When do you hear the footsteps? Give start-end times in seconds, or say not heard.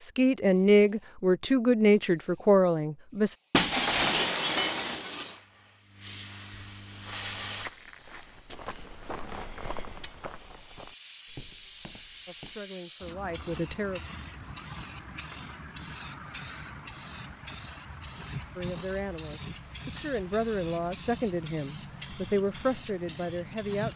6.8-12.7.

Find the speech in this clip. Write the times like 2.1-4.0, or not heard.
0.0-3.4, 12.2-14.1, 18.6-23.9.